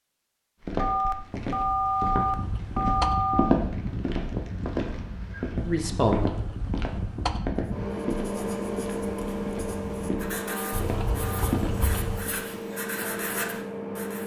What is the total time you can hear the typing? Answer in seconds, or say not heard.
5 s.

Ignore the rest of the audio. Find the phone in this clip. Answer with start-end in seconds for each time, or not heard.
0.8-3.5, 10.4-11.5.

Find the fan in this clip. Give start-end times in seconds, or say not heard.
2.3-14.2.